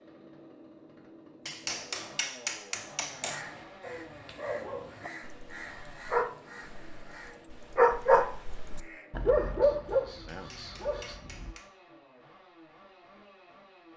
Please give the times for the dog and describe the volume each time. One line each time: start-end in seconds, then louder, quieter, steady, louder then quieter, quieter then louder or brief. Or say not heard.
3.8-11.6 louder then quieter.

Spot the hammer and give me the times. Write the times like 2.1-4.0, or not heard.
1.4-3.5, 10.2-11.7.